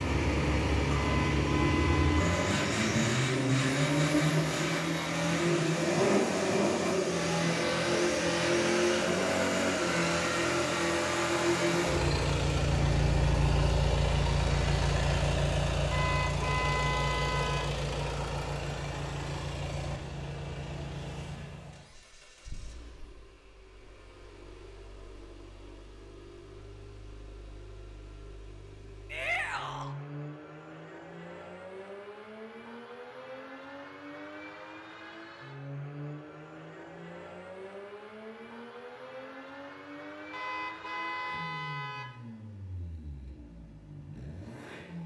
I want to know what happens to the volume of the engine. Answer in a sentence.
The loudness of the engine goes down.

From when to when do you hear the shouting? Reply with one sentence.
The shouting can be heard from 29.1 to 29.9 s.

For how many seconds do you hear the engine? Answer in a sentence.
The engine can be heard for 45 seconds in total.